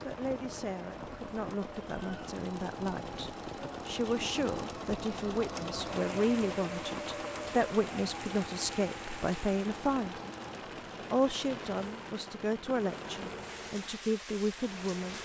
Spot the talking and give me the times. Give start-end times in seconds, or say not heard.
0.1-10.2, 11.1-15.1.